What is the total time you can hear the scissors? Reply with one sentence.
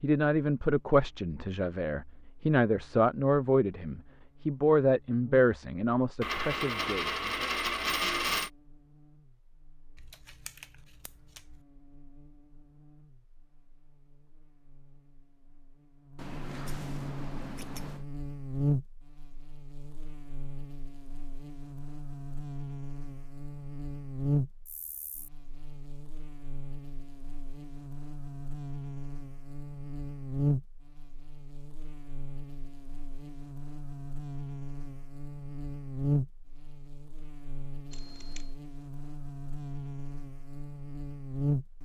You can hear the scissors for 4 seconds altogether.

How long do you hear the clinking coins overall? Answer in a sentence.
You can hear the clinking coins for 2 seconds altogether.